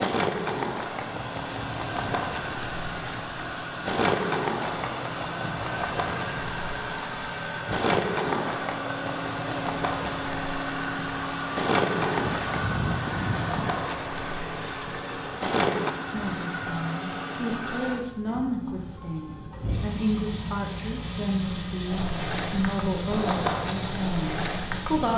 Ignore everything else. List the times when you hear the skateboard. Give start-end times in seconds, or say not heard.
0.0-15.9, 21.9-25.1.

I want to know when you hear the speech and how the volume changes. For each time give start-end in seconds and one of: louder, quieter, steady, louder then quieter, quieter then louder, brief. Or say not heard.
16.0-25.1 steady.